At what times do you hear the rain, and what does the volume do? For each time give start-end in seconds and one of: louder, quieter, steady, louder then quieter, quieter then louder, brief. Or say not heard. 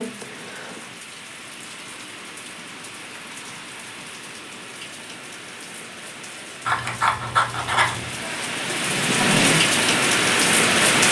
0.0-11.0 louder.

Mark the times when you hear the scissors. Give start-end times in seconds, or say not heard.
6.7-8.2.